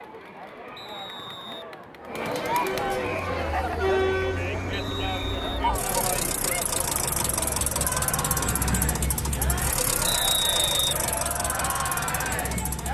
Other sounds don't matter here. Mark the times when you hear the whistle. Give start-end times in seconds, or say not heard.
0.8-1.6, 4.7-5.7, 10.1-10.8.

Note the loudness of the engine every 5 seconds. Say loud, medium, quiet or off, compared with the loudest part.
medium, loud, loud.